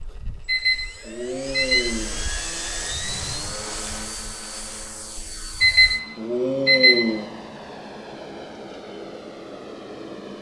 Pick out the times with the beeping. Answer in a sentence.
The beeping can be heard from 0.5 to 2.1 s and from 5.6 to 7.2 s.